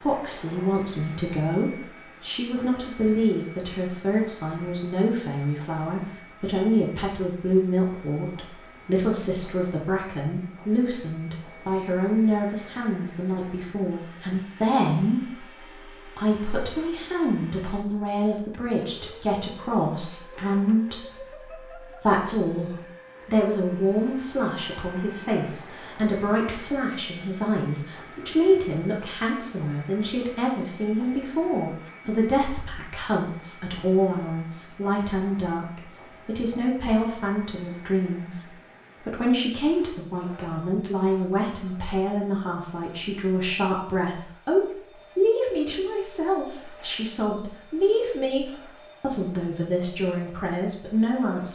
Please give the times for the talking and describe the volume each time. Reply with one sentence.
You can hear the talking from 0.0 to 51.5 s, at a steady volume.